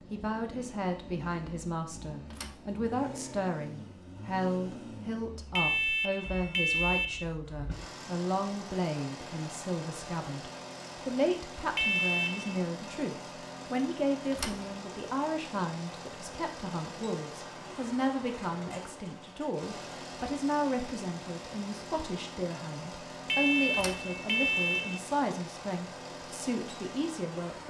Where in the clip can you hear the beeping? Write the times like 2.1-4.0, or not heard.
5.5-7.2, 11.8-12.6, 23.2-25.0.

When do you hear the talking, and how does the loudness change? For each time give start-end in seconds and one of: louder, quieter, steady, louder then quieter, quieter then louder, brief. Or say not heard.
0.0-27.6 steady.